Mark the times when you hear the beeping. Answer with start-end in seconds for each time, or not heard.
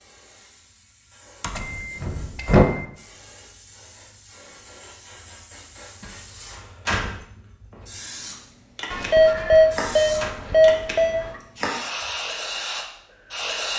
1.4-2.9, 8.9-11.4.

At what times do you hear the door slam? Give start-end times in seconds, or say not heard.
1.4-2.6, 6.0-7.2, 9.3-10.3.